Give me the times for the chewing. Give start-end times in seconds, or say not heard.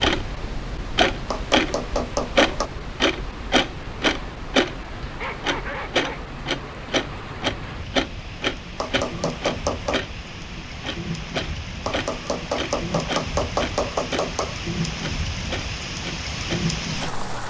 not heard.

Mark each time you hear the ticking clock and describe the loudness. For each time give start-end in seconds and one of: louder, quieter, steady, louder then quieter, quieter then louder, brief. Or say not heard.
0.0-17.4 quieter.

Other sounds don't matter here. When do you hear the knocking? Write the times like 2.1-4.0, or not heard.
1.2-2.7, 8.8-10.1, 11.8-14.6.